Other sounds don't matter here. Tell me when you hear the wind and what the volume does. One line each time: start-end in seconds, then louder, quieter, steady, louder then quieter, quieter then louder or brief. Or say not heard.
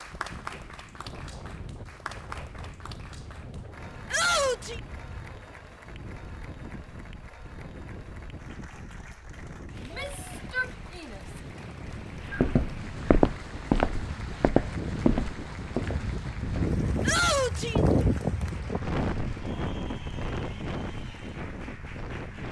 0.0-22.4 louder.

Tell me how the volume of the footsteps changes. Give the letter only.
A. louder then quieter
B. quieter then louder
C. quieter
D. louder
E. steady
C.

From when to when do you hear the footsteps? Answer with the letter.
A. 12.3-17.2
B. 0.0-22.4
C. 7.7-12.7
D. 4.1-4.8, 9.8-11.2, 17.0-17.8
A.